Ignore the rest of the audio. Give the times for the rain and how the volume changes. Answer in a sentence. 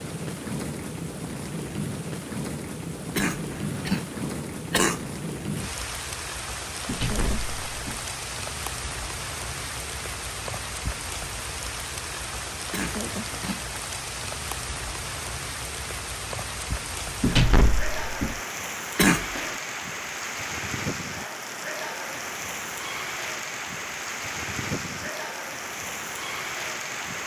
You can hear the rain from 0.0 to 27.2 s, at a steady volume.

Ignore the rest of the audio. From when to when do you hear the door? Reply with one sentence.
The door can be heard from 6.8 to 8.1 s and from 17.2 to 18.4 s.